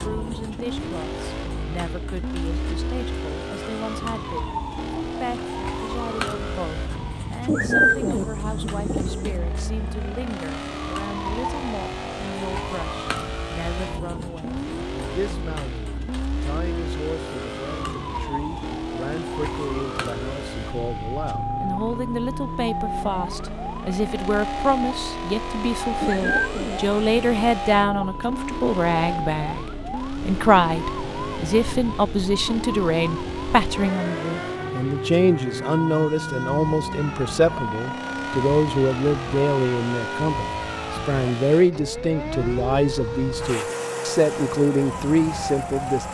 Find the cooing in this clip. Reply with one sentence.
The cooing can be heard from 7.5 to 9.3 s and from 26.0 to 27.6 s.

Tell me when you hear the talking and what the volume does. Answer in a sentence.
You can hear the talking from 0.0 to 46.0 s, getting louder.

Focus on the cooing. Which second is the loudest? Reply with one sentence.
The loudest moment of the cooing is at 8 seconds.